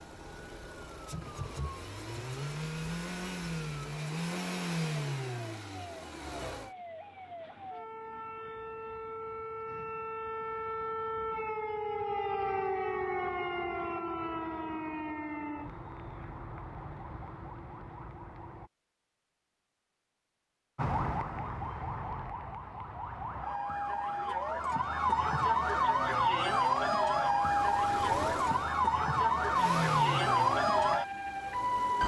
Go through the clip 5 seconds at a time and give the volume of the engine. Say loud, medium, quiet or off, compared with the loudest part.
loud, loud, off, off, off, loud, loud.